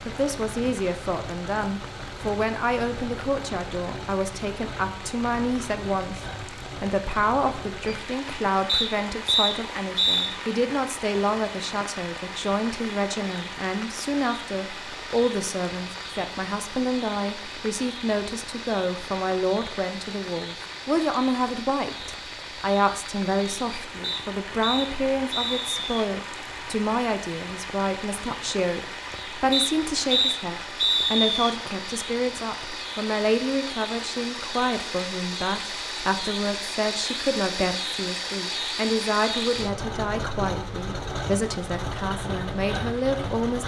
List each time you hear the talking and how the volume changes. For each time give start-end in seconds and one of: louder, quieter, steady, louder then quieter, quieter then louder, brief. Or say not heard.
0.1-43.6 steady.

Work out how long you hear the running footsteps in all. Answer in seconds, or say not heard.
not heard.